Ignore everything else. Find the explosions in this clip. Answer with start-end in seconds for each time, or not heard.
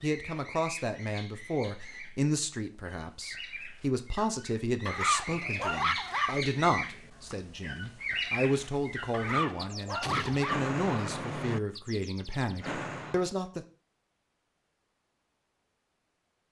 10.0-10.5.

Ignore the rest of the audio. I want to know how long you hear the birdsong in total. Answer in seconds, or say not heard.
13 s.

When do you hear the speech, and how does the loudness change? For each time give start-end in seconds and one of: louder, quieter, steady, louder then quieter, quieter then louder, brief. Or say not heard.
0.0-13.7 steady.